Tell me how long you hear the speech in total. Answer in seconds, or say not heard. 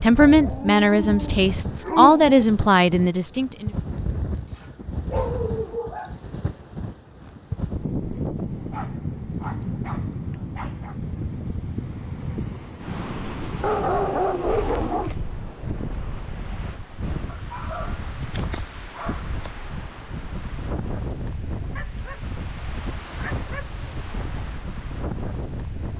4 s.